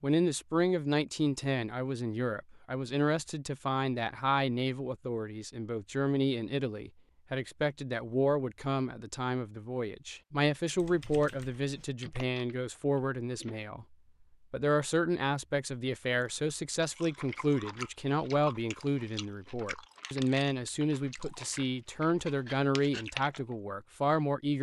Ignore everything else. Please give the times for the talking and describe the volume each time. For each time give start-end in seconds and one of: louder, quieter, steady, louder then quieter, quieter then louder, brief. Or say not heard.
0.0-24.5 steady.